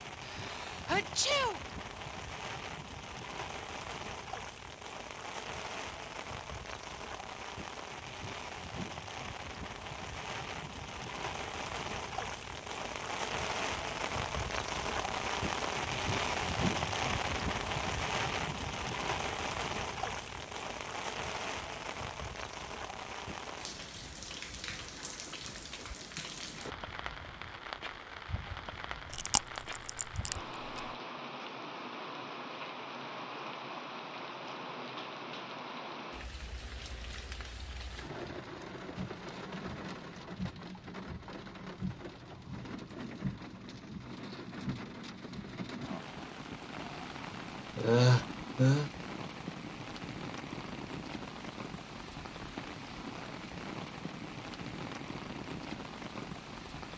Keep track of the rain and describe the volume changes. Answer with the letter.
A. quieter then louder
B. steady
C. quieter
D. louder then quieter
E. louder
D.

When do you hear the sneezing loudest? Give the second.
48 s.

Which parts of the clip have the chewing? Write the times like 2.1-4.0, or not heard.
29.1-30.9.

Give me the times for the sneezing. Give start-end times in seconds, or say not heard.
0.2-1.6, 47.8-48.9.